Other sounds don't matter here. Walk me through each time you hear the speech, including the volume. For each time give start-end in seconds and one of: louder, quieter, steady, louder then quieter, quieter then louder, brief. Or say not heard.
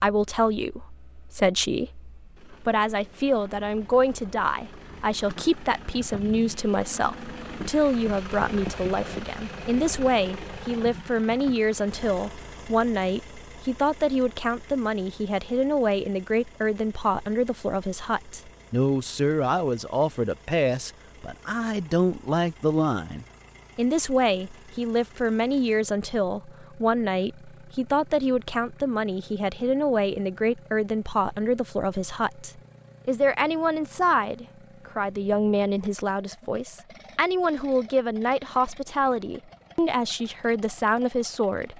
0.0-41.7 steady.